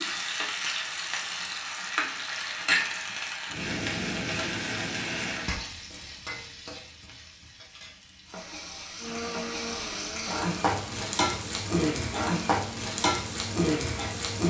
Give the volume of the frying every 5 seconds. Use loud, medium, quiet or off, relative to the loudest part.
loud, medium, loud.